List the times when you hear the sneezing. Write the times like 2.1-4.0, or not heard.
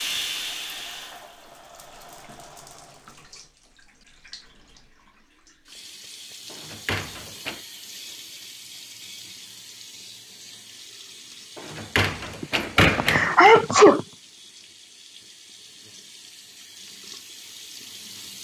12.4-14.0.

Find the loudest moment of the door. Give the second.
13 s.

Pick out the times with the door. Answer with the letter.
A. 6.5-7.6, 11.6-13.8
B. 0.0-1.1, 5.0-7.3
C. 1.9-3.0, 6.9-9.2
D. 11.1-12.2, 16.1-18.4
A.